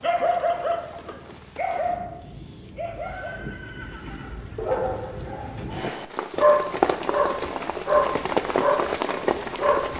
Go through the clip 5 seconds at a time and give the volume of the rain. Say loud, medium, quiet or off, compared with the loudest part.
quiet, loud.